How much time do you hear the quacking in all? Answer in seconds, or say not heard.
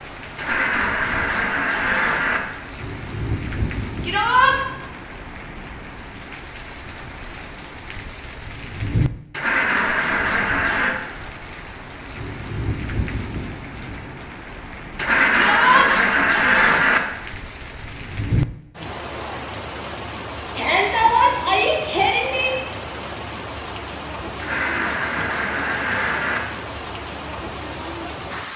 8 s.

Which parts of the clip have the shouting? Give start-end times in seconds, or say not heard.
4.0-4.5, 15.3-15.9, 20.6-22.6.